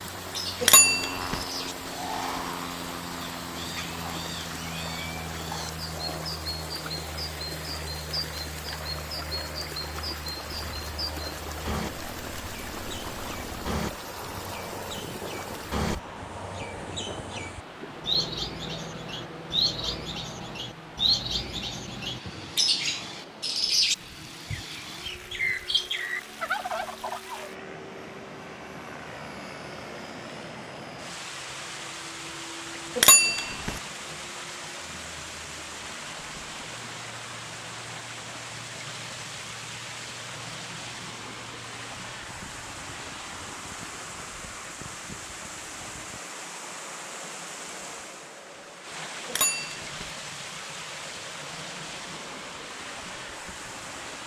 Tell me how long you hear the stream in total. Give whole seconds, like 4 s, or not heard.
54 s.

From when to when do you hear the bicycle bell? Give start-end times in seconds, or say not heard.
0.6-1.4, 33.0-33.8, 49.2-50.1.